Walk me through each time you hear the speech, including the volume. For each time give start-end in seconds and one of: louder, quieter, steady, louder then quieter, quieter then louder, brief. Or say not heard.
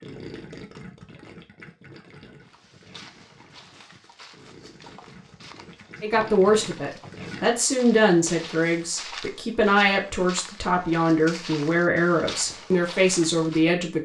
6.0-14.0 steady.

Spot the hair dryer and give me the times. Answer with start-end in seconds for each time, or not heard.
not heard.